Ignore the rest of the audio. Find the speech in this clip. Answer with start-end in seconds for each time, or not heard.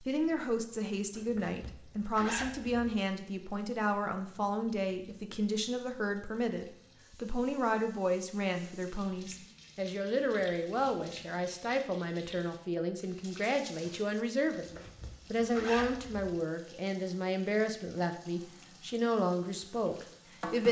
0.0-20.6.